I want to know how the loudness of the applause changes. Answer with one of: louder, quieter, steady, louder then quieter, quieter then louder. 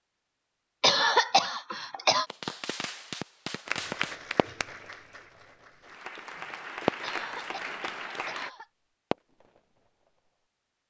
quieter then louder.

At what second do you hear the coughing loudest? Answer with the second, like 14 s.
1 s.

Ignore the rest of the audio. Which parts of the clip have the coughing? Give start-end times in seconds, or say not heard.
0.8-2.2, 7.0-8.7.